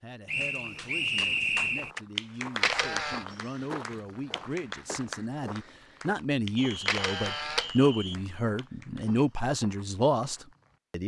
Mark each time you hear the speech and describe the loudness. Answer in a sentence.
The speech can be heard from 0.0 to 11.0 s, getting louder.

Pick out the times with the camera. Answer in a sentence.
You can hear the camera from 2.6 to 3.2 s and from 6.8 to 7.7 s.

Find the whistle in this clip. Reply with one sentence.
You can hear the whistle from 0.2 to 1.9 s and from 6.5 to 8.2 s.